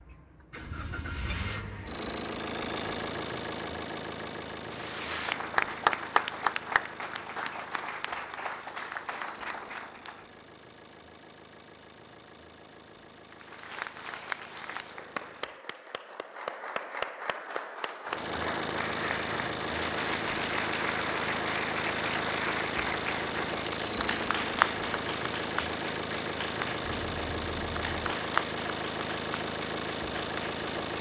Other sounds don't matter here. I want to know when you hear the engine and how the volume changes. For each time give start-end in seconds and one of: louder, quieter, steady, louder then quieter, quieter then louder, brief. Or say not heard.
0.0-15.7 quieter
18.1-30.9 steady.